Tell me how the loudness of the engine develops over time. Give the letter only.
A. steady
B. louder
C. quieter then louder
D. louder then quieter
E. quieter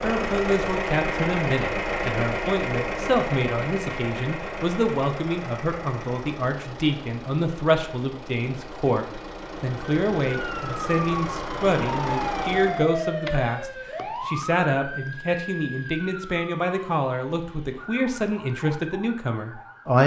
C.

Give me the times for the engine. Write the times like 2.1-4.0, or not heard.
0.0-12.9.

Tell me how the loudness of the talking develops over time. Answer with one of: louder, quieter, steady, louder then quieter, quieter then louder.
steady.